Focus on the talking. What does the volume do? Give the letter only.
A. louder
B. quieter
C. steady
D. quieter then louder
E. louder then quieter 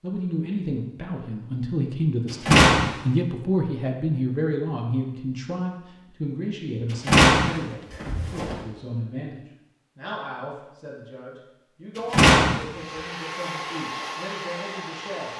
B.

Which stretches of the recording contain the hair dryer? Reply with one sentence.
You can hear the hair dryer from 12.7 to 15.3 s.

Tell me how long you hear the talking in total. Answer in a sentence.
The talking can be heard for 15 seconds in total.